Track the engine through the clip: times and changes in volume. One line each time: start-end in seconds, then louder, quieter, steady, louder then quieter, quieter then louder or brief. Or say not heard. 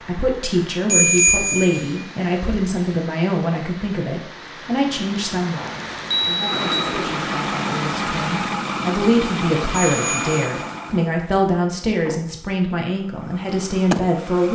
6.5-14.5 quieter then louder.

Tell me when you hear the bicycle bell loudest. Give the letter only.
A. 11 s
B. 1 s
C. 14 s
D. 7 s
B.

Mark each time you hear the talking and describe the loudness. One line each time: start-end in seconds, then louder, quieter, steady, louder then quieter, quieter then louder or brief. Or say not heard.
0.0-14.5 quieter then louder.